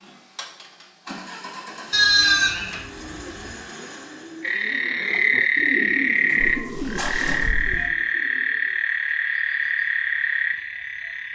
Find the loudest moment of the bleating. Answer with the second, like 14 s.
2 s.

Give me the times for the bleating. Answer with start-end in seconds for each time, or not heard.
1.9-3.5, 6.4-7.9.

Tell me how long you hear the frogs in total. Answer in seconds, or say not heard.
7 s.